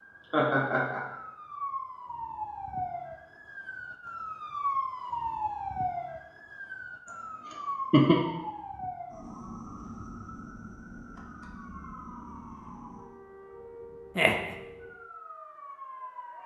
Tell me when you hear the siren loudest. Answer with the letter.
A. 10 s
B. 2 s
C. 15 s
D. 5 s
D.